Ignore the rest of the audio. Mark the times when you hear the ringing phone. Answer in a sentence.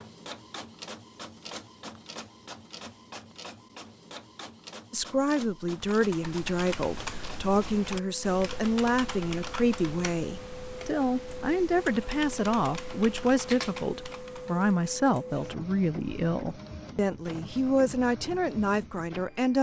You can't hear the ringing phone here.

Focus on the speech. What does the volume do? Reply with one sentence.
The volume of the speech stays about the same.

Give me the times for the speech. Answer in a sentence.
You can hear the speech from 4.9 to 19.5 s.